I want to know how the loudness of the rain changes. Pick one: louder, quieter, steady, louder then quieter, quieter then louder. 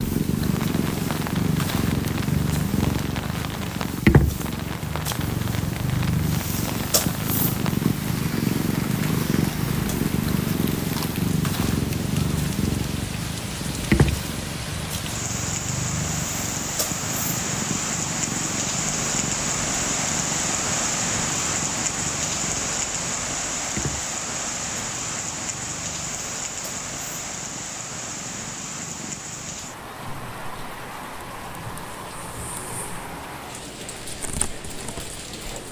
louder then quieter.